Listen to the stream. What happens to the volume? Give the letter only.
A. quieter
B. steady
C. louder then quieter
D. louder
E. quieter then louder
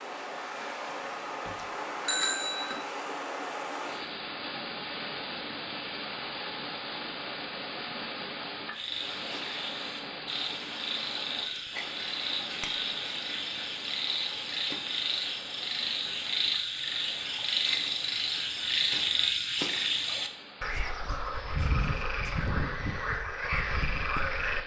A.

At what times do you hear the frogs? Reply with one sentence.
You can hear the frogs from 8.7 to 24.6 s.